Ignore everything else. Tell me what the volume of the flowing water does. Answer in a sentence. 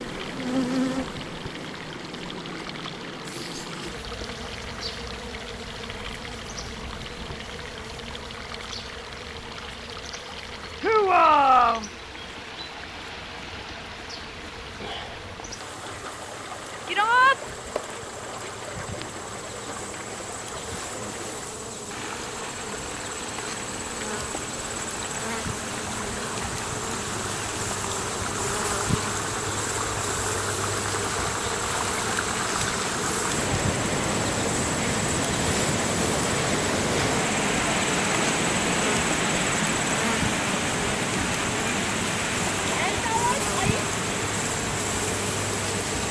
The volume of the flowing water goes up.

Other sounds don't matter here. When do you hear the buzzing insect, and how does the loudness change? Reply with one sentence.
The buzzing insect can be heard from 0.0 to 46.0 s, getting quieter then louder.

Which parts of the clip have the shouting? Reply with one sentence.
The shouting can be heard from 10.8 to 11.9 s, from 16.9 to 17.4 s and from 42.6 to 43.9 s.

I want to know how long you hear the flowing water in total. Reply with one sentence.
You can hear the flowing water for 46 seconds altogether.